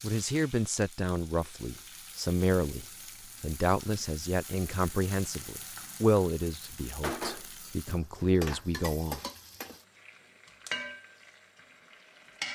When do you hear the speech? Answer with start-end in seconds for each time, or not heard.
0.0-9.2.